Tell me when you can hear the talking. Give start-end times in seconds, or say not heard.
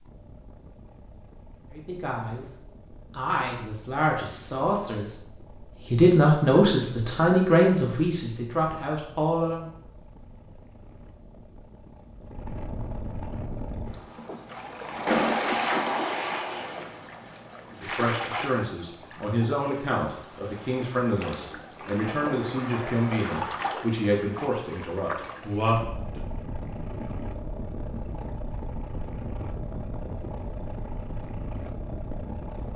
1.7-2.5, 3.1-9.7, 17.8-26.2.